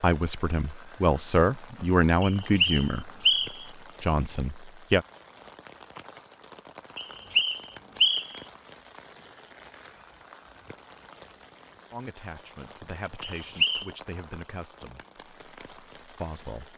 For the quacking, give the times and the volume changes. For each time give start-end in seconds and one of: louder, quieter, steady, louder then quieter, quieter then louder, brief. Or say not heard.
not heard.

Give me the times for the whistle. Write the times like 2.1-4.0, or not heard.
2.2-3.6, 7.0-8.4, 13.2-13.8.